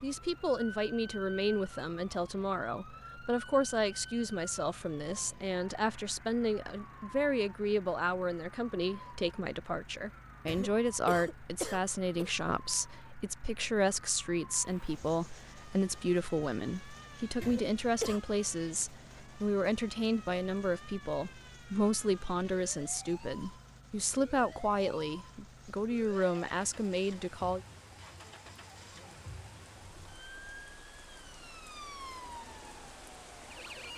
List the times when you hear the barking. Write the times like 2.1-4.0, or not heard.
not heard.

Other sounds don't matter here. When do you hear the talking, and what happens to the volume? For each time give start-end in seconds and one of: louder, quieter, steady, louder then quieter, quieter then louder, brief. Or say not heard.
0.0-27.6 steady.